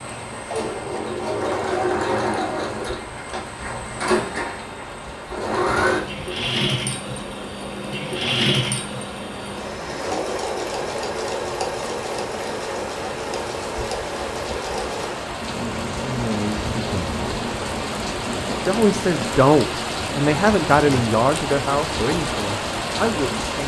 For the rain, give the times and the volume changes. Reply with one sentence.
The rain can be heard from 0.0 to 23.6 s, getting louder.